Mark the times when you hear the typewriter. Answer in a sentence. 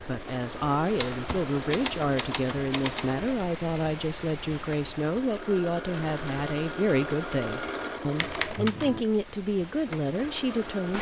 The typewriter can be heard from 0.9 to 3.1 s and from 8.2 to 9.1 s.